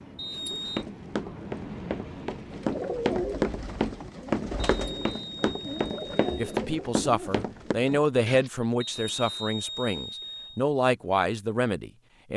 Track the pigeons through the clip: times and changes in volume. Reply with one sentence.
The pigeons can be heard from 2.5 to 8.5 s, getting quieter.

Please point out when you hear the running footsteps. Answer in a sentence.
You can hear the running footsteps from 0.5 to 7.8 s.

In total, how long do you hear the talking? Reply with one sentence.
The talking can be heard for 6 seconds in total.